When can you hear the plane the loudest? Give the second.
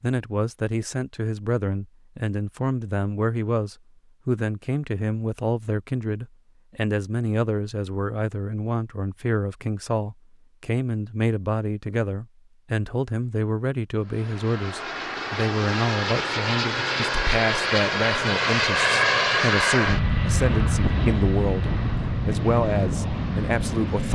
19 s.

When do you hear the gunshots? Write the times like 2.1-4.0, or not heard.
not heard.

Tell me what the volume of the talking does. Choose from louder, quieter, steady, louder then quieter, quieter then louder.
steady.